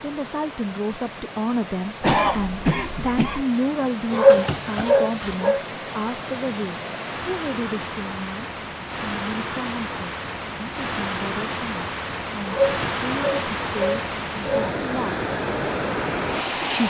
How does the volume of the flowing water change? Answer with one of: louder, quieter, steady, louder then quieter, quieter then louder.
louder.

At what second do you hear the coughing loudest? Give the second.
2 s.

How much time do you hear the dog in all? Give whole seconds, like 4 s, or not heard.
4 s.